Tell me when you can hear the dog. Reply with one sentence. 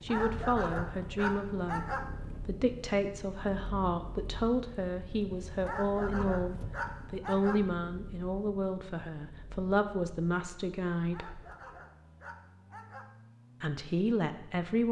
The dog can be heard from 0.1 to 2.1 s, from 5.6 to 7.6 s and from 11.1 to 13.1 s.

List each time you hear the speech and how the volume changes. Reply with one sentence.
The speech can be heard from 0.0 to 11.4 s, at a steady volume; and briefly from 13.6 to 14.8 s.